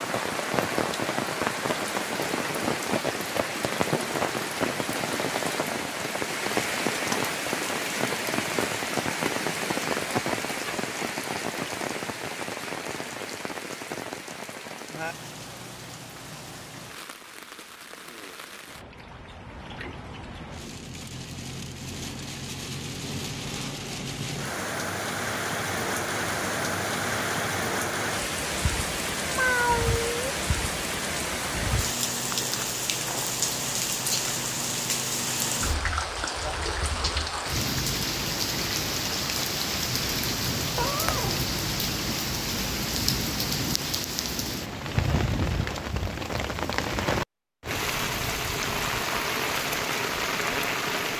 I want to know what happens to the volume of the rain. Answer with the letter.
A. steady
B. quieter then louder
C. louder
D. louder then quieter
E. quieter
B.